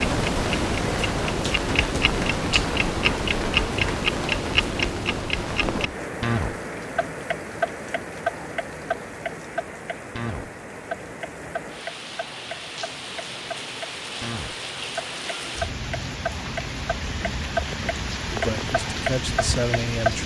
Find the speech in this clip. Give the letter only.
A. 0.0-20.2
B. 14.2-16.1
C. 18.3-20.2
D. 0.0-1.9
C.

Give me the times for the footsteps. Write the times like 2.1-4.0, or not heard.
not heard.